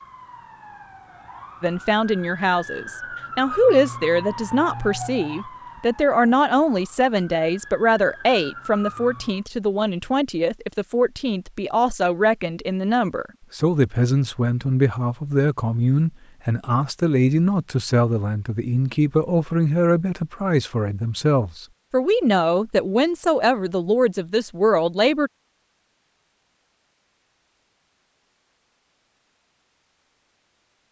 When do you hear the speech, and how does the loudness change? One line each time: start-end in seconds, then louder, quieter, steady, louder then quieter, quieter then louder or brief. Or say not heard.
1.6-25.3 steady.